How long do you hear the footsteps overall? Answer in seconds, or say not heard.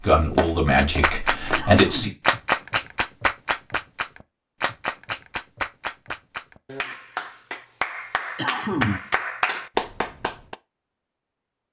2 s.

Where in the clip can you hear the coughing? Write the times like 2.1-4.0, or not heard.
1.6-2.1, 8.3-9.2.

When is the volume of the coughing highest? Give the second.
9 s.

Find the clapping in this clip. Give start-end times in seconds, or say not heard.
0.8-10.6.